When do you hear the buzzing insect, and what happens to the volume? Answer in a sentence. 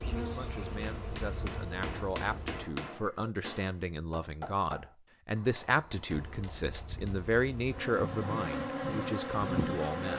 You can hear the buzzing insect briefly from 0.0 to 2.6 s; and from 6.1 to 10.1 s, getting louder.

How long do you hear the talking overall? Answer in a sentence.
The talking can be heard for 10 seconds in total.